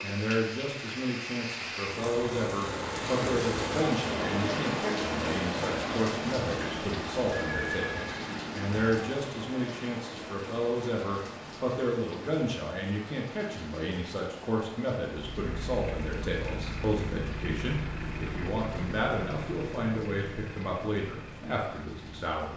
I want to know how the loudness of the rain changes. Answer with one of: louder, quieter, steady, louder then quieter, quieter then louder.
quieter.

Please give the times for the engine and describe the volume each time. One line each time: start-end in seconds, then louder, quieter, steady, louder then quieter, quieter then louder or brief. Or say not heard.
15.2-22.5 quieter.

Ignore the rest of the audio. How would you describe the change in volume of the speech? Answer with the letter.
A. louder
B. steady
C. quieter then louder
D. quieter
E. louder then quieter
B.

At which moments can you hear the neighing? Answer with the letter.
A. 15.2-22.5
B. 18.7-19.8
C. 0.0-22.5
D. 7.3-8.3
D.